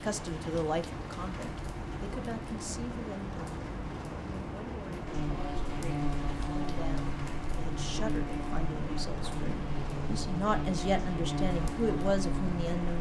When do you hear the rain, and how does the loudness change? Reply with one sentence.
The rain can be heard from 0.0 to 12.9 s, at a steady volume.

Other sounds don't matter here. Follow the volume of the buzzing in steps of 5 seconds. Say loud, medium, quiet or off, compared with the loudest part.
off, loud, loud.